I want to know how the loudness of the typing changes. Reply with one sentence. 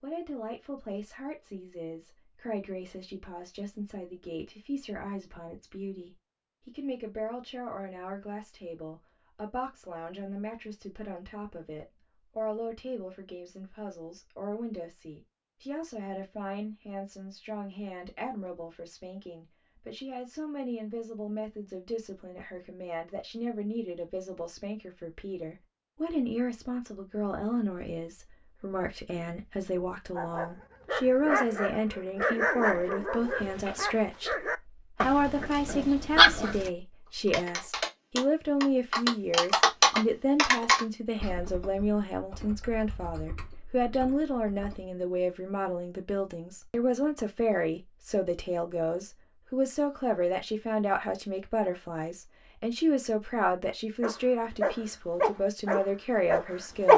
The loudness of the typing goes up, then down.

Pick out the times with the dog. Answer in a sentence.
The dog can be heard from 30.1 to 36.7 s and from 54.0 to 56.9 s.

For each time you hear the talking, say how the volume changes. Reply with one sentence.
You can hear the talking from 0.0 to 56.9 s, getting louder.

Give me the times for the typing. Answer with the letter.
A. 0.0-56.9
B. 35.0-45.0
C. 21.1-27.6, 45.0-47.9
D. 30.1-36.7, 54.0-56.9
B.